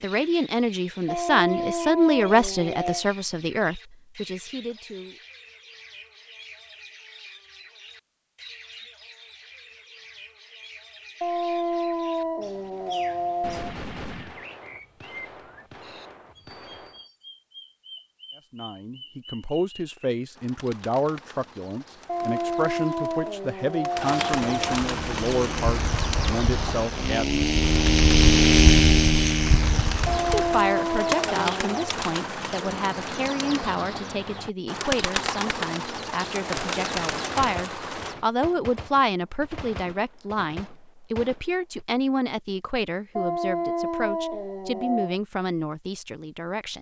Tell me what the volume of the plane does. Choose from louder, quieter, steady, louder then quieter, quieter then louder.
louder then quieter.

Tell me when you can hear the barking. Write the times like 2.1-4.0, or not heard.
1.1-3.0, 11.2-13.8, 22.1-24.8, 30.1-31.9, 43.1-45.2.